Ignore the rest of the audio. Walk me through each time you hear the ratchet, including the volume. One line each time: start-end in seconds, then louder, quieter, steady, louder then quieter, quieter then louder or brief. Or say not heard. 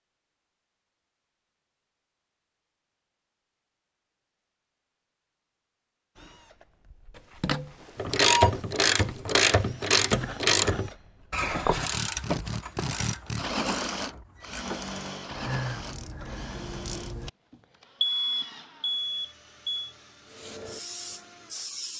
8.0-17.3 quieter then louder.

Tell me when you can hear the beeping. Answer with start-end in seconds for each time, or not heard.
7.2-8.6, 18.0-19.9.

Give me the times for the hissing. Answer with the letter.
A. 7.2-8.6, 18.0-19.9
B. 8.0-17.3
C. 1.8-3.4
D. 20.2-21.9
D.